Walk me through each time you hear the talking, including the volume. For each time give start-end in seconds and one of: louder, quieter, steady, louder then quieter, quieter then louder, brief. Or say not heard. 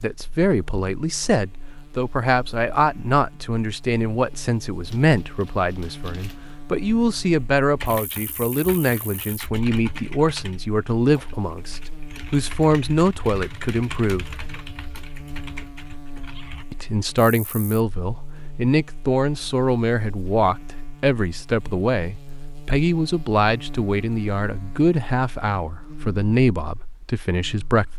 0.0-14.2 steady
16.7-27.9 steady.